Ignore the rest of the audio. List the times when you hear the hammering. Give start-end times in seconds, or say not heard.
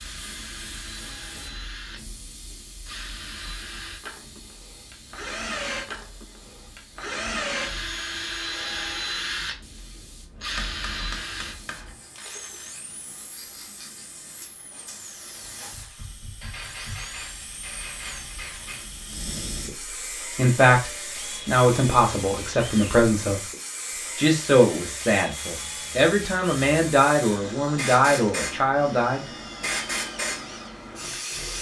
10.4-11.8, 16.4-18.9.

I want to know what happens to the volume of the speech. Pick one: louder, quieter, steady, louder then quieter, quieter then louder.
steady.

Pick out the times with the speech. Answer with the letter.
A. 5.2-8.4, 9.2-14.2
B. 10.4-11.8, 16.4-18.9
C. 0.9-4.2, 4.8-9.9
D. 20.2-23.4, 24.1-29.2
D.